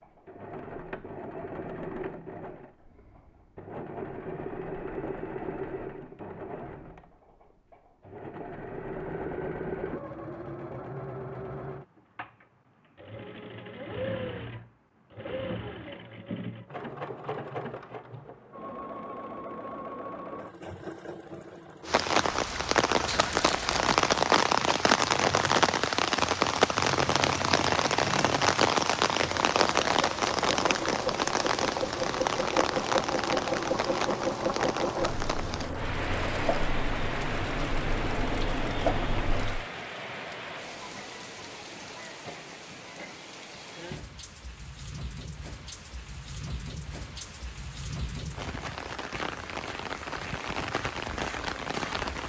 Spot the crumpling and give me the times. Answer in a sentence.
The crumpling can be heard from 23.1 to 23.9 s.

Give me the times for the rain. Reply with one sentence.
You can hear the rain from 21.9 to 52.2 s.